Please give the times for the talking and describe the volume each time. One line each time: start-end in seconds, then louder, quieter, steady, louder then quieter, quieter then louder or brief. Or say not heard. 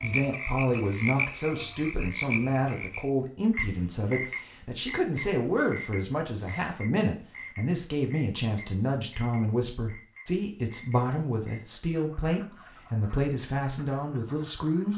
0.0-14.9 steady.